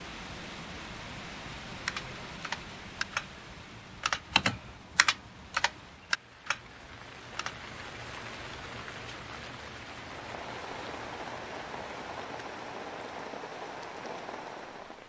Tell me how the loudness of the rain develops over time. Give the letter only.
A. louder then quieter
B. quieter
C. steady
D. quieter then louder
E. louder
D.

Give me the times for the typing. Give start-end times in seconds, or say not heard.
1.8-7.6.